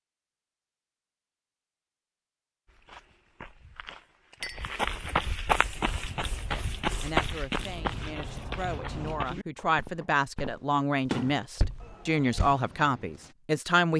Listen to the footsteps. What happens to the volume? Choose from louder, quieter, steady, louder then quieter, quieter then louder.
louder then quieter.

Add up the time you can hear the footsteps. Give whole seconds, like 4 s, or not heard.
10 s.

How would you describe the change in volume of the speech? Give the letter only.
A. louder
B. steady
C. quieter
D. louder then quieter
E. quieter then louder
A.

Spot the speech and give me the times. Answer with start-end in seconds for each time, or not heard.
6.5-13.9.